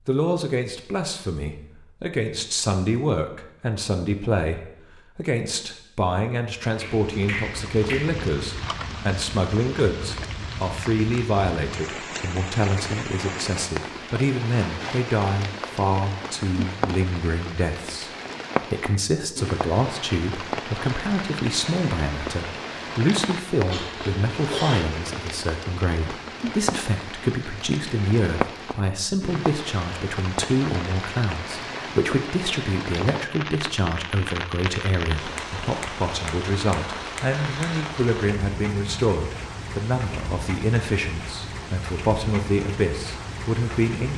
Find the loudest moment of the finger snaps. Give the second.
7 s.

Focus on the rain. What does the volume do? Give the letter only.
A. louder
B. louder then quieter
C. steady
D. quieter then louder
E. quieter
C.